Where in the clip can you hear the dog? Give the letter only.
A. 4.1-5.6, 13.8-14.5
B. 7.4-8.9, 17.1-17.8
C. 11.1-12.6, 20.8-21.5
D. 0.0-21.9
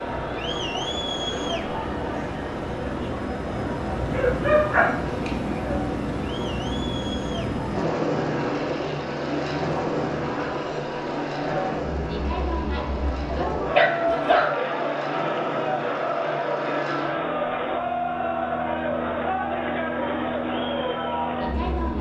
A.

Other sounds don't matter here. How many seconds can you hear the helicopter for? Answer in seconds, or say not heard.
22 s.